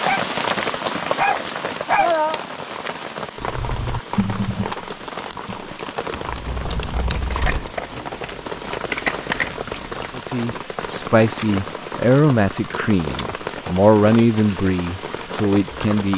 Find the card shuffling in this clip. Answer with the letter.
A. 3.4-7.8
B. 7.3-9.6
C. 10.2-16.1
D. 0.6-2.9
B.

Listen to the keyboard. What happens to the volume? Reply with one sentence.
The loudness of the keyboard goes down, then up.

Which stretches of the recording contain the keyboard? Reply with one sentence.
The keyboard can be heard from 3.4 to 7.8 s.